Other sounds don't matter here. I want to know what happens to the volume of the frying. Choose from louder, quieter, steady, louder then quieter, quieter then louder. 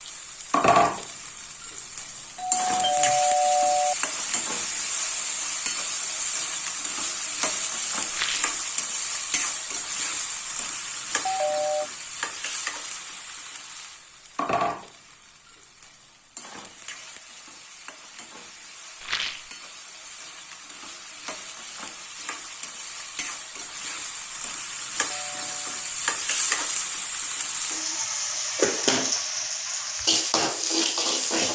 quieter then louder.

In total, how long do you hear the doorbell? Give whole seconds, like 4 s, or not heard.
4 s.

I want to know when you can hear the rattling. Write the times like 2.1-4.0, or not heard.
8.1-8.6, 19.0-19.5.